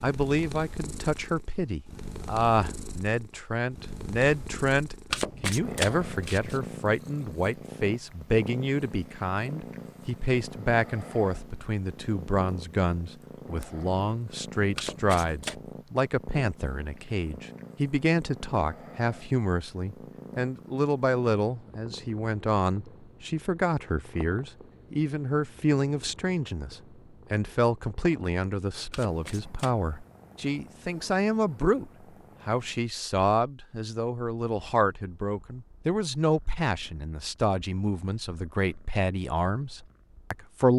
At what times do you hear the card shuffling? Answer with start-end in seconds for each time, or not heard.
5.1-6.7, 14.8-15.7, 28.9-29.9.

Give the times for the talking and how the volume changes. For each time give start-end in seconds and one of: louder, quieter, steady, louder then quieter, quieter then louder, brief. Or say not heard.
0.0-40.7 steady.